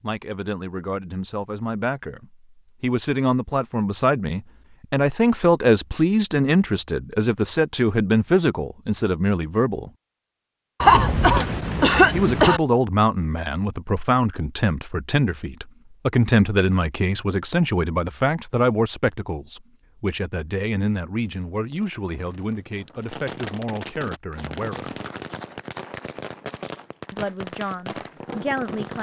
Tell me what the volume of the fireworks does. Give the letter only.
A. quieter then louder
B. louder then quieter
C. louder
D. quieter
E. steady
C.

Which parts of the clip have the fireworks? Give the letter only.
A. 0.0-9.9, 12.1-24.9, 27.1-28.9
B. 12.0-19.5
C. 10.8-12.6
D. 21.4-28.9
D.